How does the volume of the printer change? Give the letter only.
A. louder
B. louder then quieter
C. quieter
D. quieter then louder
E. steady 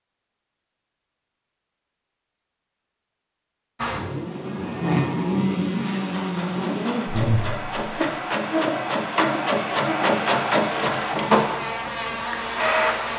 B.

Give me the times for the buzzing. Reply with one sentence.
You can hear the buzzing from 3.8 to 13.1 s.